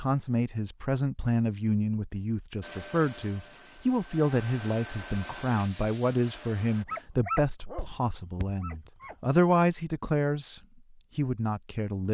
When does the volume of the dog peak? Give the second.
7 s.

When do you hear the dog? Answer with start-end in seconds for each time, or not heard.
6.7-9.2.